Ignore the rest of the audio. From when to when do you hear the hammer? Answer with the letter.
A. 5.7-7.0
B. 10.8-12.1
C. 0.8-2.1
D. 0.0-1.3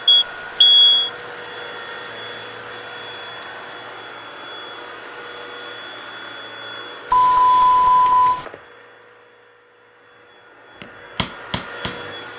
B.